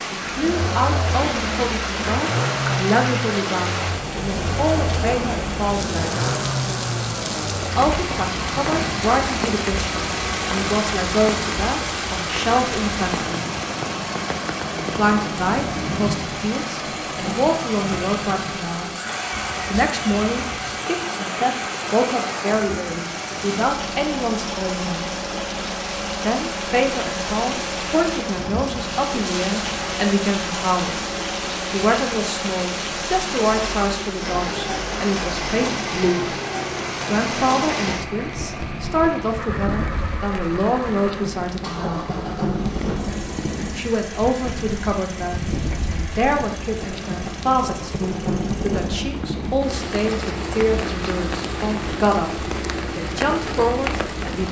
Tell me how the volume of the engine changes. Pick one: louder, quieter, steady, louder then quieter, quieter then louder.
quieter.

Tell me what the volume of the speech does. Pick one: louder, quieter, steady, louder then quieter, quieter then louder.
steady.